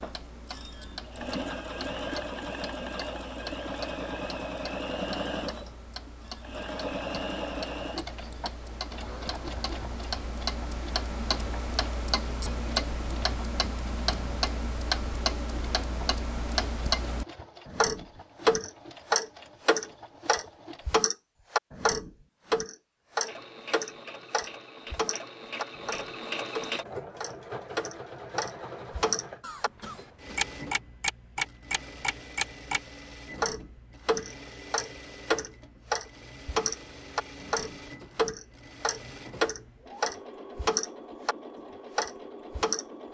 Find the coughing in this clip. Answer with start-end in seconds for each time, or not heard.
29.4-30.4.